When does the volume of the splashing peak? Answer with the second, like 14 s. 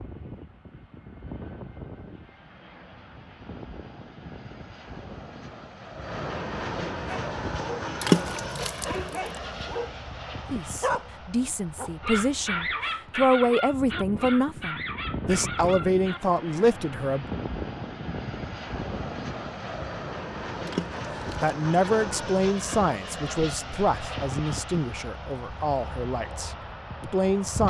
8 s.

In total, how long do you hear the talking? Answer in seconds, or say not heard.
13 s.